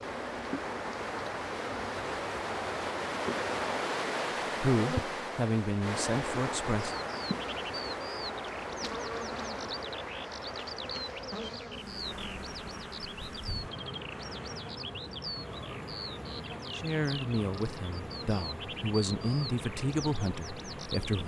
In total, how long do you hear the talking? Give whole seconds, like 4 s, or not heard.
7 s.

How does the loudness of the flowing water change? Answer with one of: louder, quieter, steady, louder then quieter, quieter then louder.
quieter.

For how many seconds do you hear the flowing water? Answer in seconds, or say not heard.
21 s.